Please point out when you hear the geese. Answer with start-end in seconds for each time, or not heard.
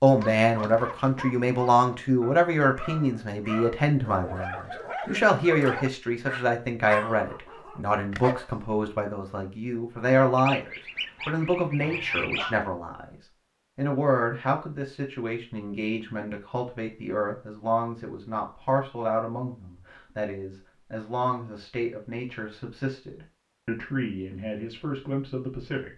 10.3-12.7.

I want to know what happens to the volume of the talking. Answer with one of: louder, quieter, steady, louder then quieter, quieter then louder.
quieter.